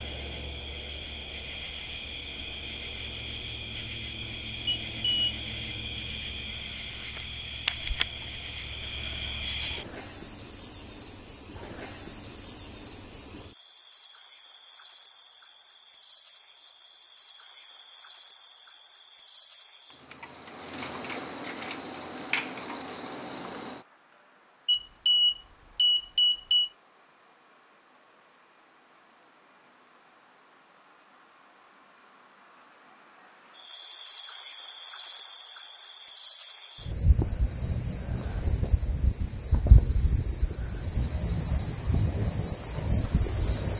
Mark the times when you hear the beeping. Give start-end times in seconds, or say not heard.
4.7-5.3, 24.6-26.7.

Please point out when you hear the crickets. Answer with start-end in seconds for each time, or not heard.
0.0-43.7.